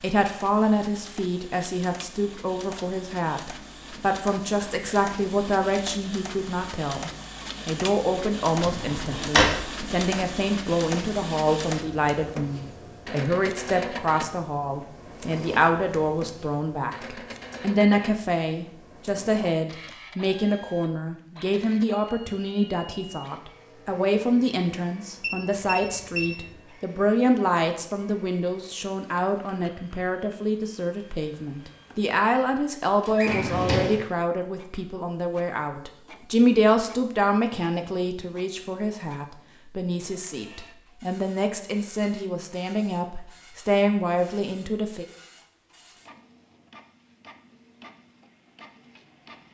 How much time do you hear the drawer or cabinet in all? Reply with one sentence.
The drawer or cabinet can be heard for 2 seconds in total.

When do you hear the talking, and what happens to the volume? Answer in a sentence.
You can hear the talking from 0.0 to 45.0 s, at a steady volume.